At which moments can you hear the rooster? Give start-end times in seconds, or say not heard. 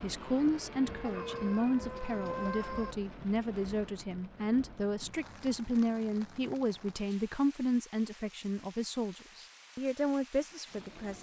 1.0-3.0.